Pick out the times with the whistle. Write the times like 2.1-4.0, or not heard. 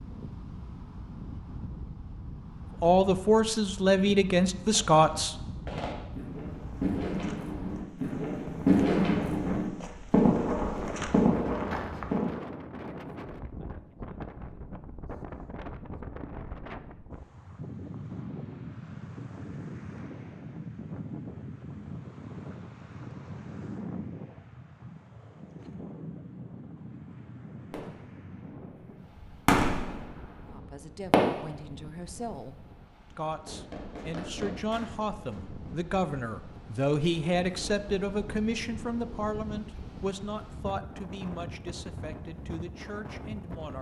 not heard.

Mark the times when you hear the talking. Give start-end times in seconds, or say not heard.
2.8-5.8, 30.4-43.7.